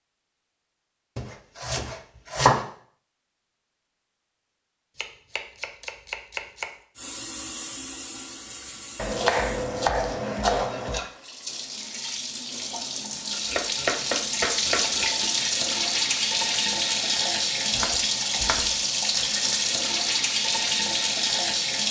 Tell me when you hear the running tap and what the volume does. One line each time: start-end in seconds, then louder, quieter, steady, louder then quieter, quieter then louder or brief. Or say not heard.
7.0-21.8 louder.